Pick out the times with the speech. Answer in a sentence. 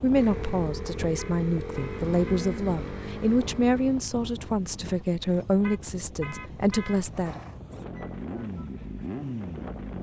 You can hear the speech from 0.0 to 7.4 s.